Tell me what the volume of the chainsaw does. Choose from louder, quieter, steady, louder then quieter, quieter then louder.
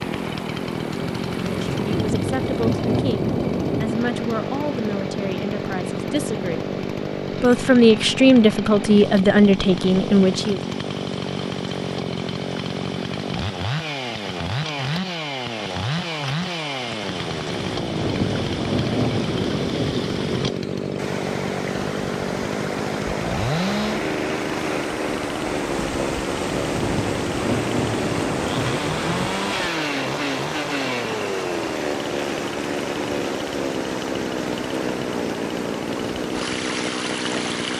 steady.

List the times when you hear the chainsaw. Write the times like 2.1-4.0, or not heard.
0.0-37.7.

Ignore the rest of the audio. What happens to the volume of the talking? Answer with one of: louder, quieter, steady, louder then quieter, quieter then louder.
louder.